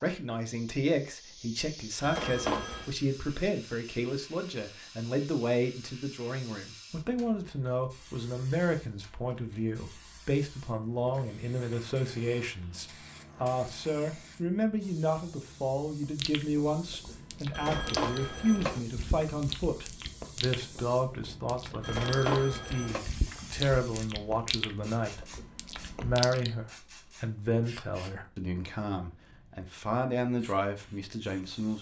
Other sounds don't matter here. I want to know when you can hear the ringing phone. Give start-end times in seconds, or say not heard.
2.0-2.9, 17.5-18.8, 21.8-23.1.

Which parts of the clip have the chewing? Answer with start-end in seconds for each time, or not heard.
16.1-26.6.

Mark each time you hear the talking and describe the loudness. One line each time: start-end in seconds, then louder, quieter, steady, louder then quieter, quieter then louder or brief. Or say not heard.
0.0-31.7 steady.